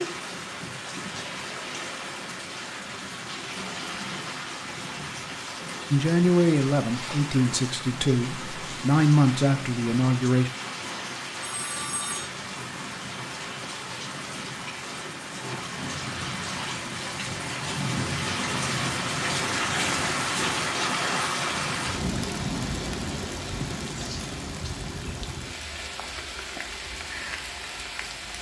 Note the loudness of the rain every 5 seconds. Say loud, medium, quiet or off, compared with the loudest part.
medium, medium, medium, loud, loud, medium.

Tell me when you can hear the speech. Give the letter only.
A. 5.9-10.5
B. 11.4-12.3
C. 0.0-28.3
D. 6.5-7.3
A.